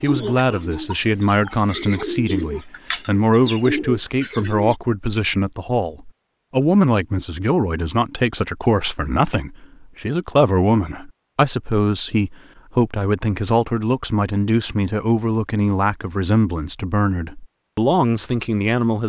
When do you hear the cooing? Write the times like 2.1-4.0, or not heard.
0.0-4.8.